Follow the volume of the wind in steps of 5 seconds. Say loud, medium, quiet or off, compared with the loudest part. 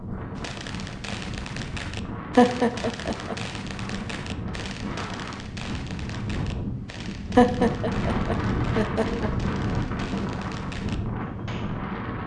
medium, loud, loud.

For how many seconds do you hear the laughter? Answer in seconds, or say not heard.
3 s.